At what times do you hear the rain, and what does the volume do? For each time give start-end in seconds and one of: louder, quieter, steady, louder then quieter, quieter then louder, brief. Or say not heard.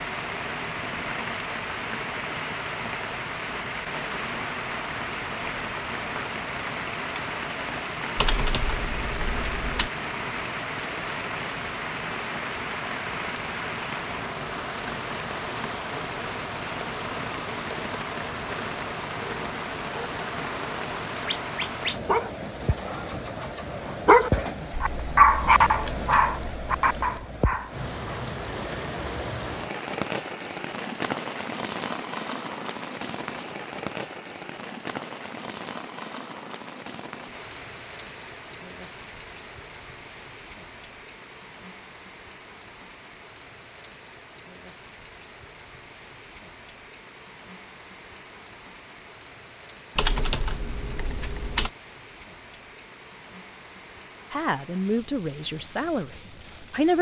0.0-56.9 quieter.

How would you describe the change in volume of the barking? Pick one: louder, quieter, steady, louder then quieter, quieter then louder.
louder then quieter.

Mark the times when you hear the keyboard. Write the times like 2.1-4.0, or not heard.
8.2-9.9, 50.0-51.7.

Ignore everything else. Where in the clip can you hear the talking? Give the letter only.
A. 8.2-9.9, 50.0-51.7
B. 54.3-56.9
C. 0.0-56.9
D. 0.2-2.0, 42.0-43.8
B.